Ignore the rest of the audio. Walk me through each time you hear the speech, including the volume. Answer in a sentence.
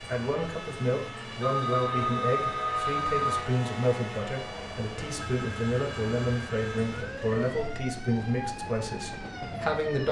You can hear the speech from 0.0 to 10.0 s, at a steady volume.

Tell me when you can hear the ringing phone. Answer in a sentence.
You can hear the ringing phone from 1.4 to 3.4 s and from 5.2 to 6.8 s.